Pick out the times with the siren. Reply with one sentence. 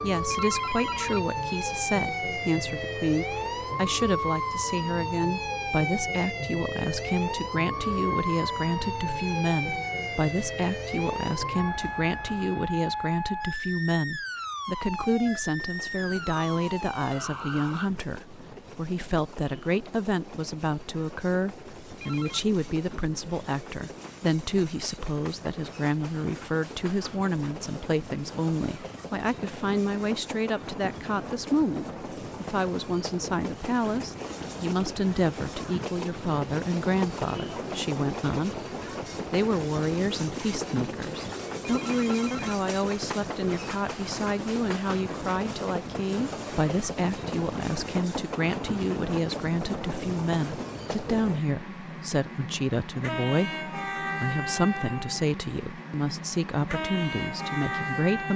You can hear the siren from 0.0 to 17.9 s.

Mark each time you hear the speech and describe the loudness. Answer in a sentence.
The speech can be heard from 0.0 to 38.6 s, at a steady volume; and from 39.3 to 58.3 s, at a steady volume.